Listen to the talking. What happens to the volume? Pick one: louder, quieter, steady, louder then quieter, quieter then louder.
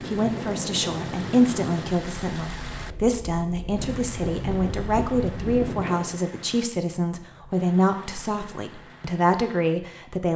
steady.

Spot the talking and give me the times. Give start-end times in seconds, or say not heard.
0.0-10.3.